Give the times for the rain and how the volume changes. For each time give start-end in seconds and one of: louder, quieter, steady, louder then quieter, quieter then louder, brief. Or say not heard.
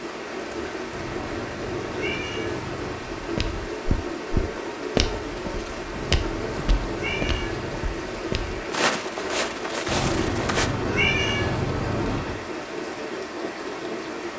0.0-14.3 steady.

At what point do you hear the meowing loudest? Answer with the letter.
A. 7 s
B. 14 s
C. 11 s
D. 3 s
C.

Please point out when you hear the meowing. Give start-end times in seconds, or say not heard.
0.9-3.0, 5.9-7.8, 9.8-12.4.